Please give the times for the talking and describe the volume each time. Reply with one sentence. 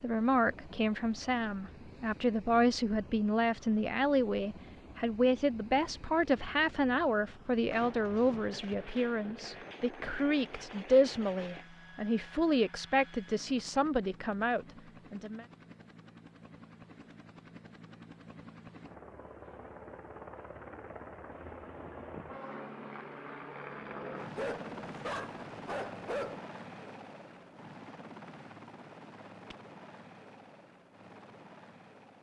You can hear the talking from 0.0 to 15.4 s, at a steady volume.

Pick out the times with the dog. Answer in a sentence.
The dog can be heard from 24.4 to 26.4 s.